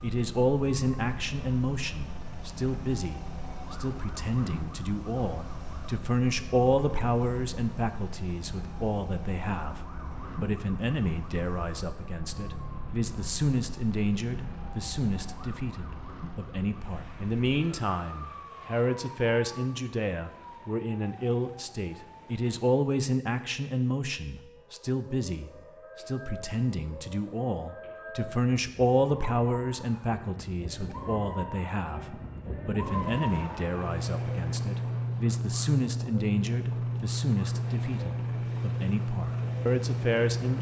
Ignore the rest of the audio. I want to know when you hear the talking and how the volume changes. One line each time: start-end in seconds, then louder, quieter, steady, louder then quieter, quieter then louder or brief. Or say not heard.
0.0-40.5 steady.